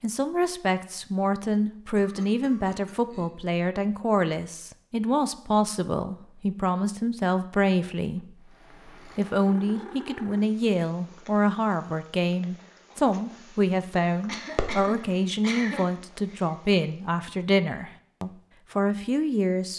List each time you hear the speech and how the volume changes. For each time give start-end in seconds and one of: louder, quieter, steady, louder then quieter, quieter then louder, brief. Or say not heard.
0.0-19.7 steady.